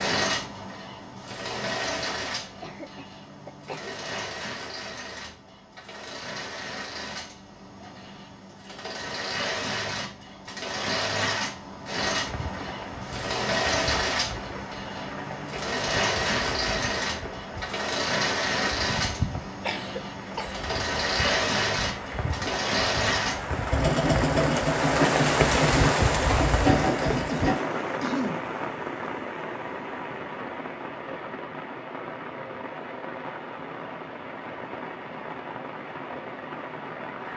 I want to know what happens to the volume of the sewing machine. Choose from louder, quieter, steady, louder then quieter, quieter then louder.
louder.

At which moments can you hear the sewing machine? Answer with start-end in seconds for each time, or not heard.
0.0-27.6.